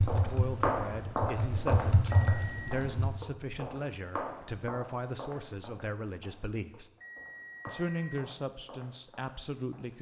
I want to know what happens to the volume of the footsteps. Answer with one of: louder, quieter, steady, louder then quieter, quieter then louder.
quieter.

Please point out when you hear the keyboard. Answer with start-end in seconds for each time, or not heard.
0.0-3.1.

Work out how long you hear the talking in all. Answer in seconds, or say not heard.
9 s.